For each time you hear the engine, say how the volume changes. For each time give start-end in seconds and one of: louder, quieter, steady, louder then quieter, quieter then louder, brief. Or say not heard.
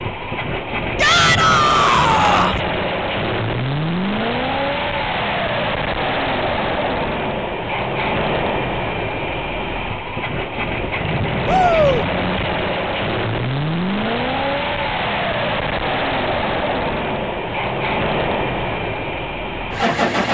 0.0-20.3 steady.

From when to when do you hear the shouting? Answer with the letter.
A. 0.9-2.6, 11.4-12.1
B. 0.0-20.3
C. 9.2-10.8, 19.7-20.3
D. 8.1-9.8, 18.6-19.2
A.